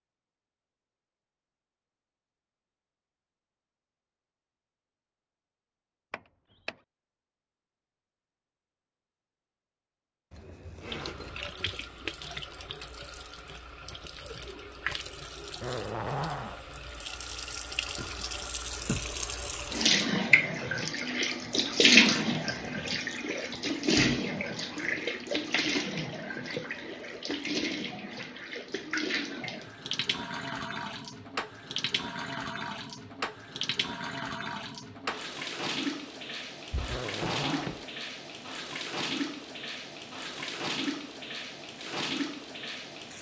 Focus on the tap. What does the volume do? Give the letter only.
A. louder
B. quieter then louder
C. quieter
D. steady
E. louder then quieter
E.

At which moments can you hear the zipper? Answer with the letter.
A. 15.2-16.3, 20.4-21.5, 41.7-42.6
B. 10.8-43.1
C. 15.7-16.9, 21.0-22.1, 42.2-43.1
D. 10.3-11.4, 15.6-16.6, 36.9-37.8
D.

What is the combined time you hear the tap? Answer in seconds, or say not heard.
32 s.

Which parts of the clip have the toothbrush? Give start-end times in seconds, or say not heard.
not heard.